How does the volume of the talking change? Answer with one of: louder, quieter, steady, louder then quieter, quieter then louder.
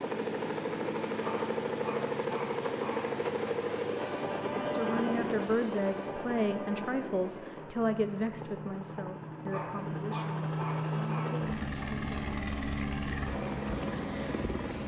quieter.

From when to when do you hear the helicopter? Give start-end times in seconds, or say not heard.
0.0-14.8.